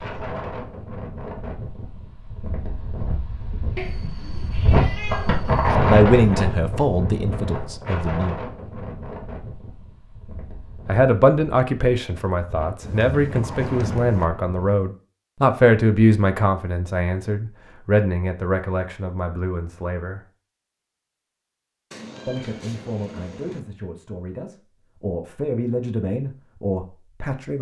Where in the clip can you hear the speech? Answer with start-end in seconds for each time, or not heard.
5.8-8.3, 10.8-20.2, 22.2-27.5.